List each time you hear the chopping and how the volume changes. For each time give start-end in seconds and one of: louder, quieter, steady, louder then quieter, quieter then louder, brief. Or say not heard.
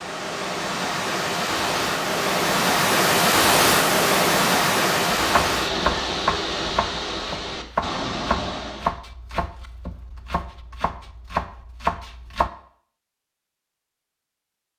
5.2-12.5 quieter then louder.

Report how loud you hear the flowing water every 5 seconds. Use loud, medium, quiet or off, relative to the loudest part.
loud, medium, off.